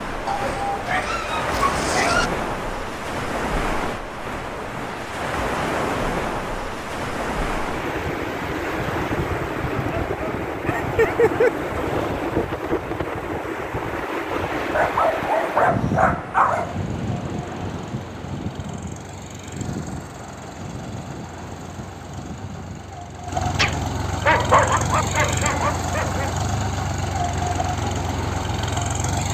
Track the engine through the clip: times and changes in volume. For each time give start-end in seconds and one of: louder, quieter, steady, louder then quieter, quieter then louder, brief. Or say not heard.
16.4-29.2 louder.